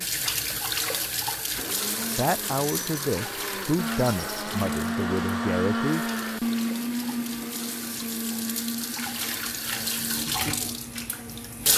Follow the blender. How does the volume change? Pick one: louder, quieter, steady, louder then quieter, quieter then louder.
louder then quieter.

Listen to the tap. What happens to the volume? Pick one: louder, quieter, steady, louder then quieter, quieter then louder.
quieter then louder.